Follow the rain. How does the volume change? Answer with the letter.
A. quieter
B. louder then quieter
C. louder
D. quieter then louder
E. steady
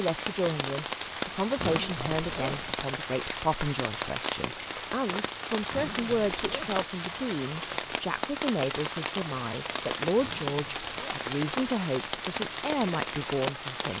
E.